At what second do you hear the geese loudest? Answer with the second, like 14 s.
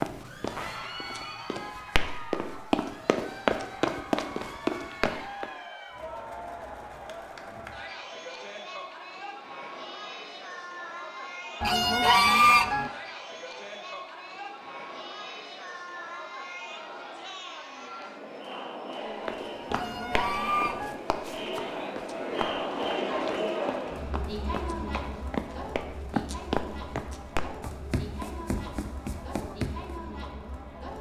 12 s.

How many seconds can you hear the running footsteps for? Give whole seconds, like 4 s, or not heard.
16 s.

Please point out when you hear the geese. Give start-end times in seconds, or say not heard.
11.6-12.9, 19.7-21.0.